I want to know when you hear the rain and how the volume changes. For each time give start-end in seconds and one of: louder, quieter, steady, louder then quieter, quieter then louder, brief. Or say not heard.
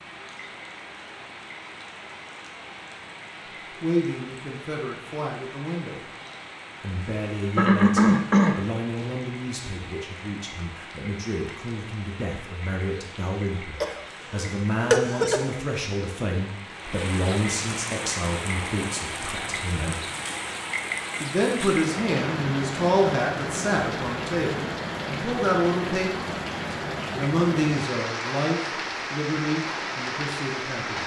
0.0-31.0 louder.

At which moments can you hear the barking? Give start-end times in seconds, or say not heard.
not heard.